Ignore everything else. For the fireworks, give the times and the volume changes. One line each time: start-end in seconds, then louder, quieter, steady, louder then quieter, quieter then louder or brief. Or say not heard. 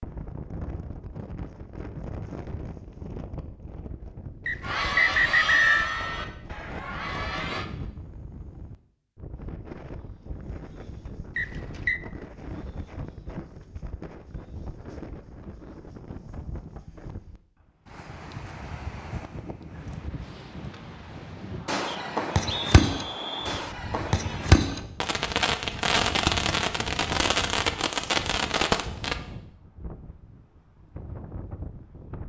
21.6-29.1 steady.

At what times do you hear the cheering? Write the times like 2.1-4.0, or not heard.
4.6-7.7.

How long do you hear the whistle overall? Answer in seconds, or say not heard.
4 s.